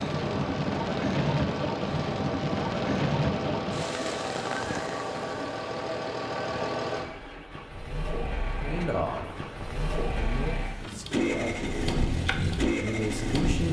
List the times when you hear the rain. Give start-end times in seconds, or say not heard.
0.0-10.2.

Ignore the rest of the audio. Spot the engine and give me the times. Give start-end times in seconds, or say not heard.
0.0-13.6.